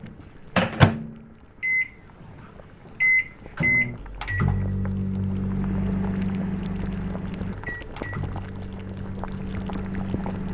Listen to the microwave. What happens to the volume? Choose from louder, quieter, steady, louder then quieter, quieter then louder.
quieter.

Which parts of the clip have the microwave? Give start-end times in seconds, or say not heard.
0.0-10.5.